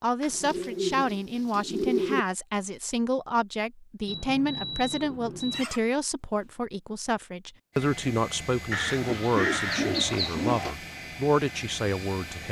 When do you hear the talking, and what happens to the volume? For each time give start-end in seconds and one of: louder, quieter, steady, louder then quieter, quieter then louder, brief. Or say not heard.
0.0-12.4 steady.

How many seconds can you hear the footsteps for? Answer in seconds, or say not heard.
not heard.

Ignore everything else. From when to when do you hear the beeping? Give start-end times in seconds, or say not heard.
4.0-5.7.